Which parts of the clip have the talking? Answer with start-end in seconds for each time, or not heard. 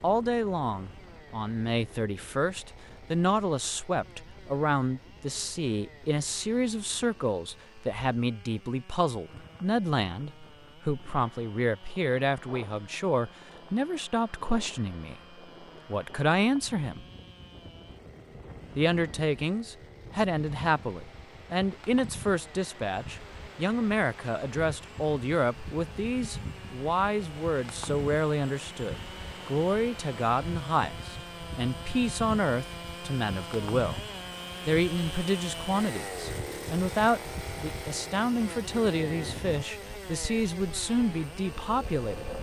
0.0-15.2, 15.8-17.1, 18.8-34.0, 34.6-42.3.